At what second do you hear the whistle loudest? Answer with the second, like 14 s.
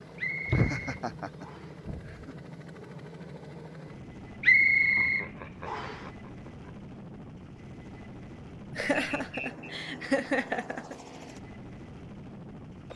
5 s.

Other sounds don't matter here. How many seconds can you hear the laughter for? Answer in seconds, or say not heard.
6 s.